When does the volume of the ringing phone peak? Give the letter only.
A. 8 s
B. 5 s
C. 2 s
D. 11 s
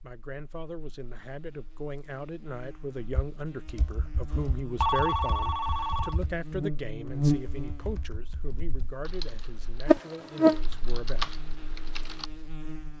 B.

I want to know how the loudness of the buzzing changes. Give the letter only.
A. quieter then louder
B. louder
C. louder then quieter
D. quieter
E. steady
B.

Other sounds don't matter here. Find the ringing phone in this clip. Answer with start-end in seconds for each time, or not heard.
4.8-6.2.